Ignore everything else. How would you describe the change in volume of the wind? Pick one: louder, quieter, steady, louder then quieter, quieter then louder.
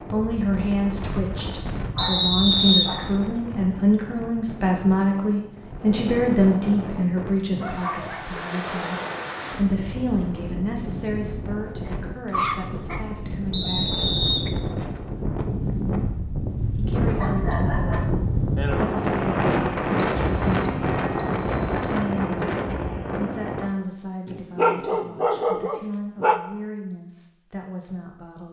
louder.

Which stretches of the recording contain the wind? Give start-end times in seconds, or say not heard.
0.0-23.7.